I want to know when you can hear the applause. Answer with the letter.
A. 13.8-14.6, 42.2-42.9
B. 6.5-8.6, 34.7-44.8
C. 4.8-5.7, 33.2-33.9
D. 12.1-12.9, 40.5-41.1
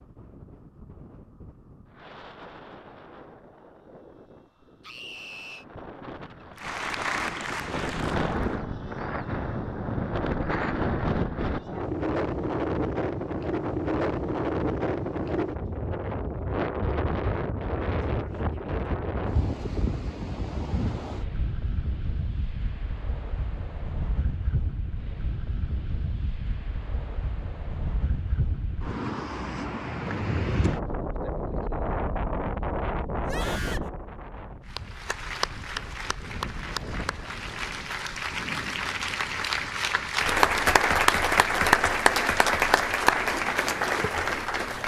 B.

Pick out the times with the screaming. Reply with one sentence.
You can hear the screaming from 4.8 to 5.7 s and from 33.2 to 33.9 s.